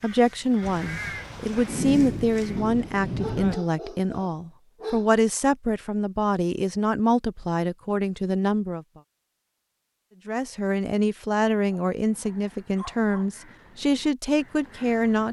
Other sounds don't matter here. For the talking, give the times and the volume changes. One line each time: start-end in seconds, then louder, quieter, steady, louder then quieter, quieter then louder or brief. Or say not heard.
0.0-8.8 steady
10.2-15.2 steady.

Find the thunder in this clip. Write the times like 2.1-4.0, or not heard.
0.6-3.5.